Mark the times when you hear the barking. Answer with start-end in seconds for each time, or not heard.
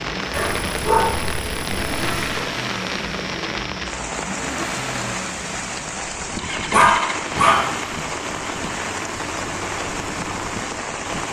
0.3-2.5, 6.7-7.6.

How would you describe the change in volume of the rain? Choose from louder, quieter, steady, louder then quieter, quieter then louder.
steady.